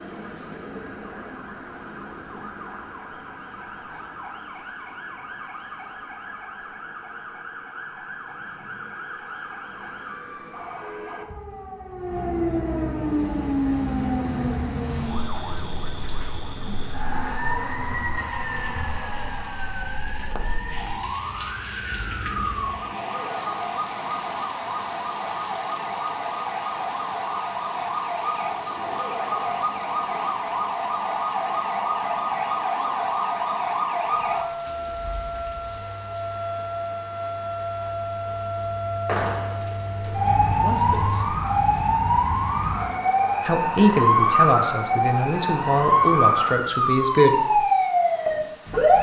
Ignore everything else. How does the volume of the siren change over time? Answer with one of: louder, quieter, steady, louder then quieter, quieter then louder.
louder.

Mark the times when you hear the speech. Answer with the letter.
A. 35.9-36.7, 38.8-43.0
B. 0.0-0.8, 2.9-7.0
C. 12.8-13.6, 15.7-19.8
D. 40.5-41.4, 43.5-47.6
D.